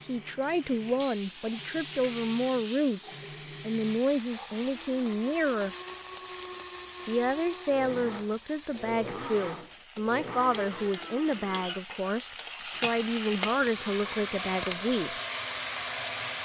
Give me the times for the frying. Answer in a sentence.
You can hear the frying from 0.0 to 16.3 s.